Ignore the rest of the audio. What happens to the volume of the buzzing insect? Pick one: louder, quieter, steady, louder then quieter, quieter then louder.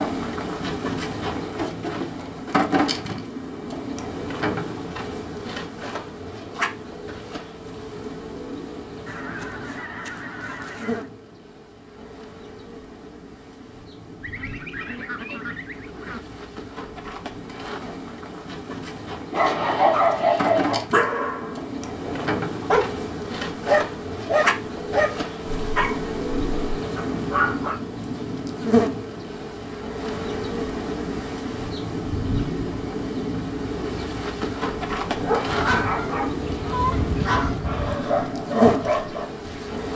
quieter then louder.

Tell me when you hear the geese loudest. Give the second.
37 s.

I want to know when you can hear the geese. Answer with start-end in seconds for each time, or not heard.
9.1-11.1, 14.2-16.2, 35.5-38.0.